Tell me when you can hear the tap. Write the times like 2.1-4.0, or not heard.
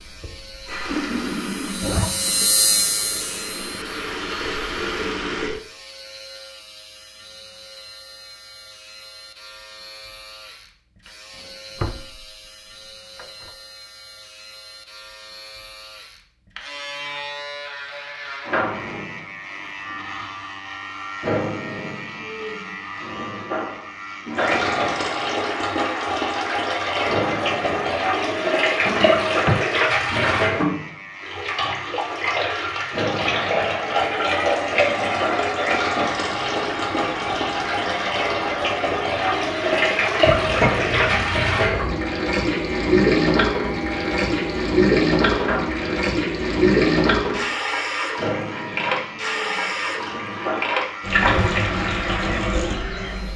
0.0-5.6, 24.3-53.3.